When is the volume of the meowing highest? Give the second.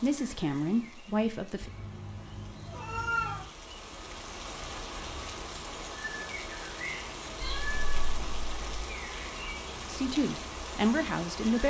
3 s.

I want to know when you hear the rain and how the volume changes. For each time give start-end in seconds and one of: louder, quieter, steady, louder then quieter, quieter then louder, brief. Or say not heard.
0.0-11.6 louder.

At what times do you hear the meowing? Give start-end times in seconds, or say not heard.
1.6-3.5, 7.4-8.8.